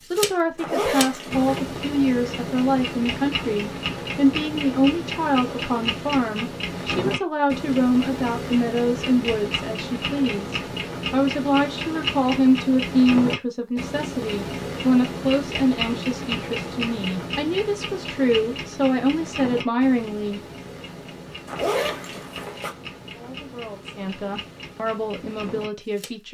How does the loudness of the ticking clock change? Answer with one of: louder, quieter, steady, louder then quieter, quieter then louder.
quieter.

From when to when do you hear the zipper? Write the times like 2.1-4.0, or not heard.
0.6-1.6, 21.4-22.7.